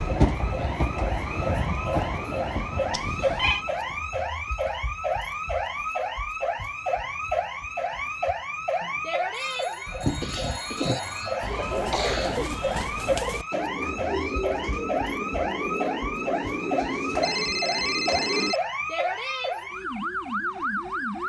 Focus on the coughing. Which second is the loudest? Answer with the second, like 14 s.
12 s.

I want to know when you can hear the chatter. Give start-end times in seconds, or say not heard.
not heard.